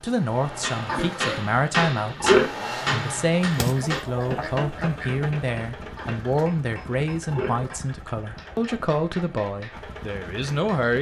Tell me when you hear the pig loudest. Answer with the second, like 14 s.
2 s.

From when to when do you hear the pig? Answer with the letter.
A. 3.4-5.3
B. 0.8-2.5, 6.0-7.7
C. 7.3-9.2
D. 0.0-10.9
B.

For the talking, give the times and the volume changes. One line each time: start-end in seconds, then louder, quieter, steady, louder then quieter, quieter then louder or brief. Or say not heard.
0.0-10.9 steady.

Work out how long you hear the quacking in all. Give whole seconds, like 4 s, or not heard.
2 s.